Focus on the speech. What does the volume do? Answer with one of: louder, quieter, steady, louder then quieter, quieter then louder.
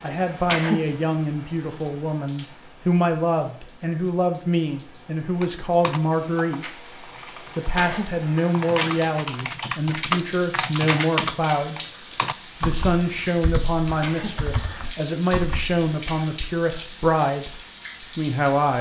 steady.